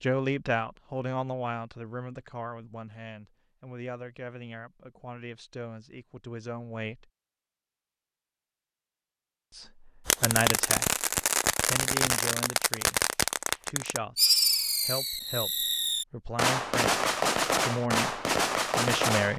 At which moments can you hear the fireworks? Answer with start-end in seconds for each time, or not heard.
10.1-19.3.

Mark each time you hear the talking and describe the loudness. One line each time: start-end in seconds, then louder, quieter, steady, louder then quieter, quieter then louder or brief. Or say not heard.
0.0-7.0 quieter
9.5-10.9 brief
11.6-19.3 louder.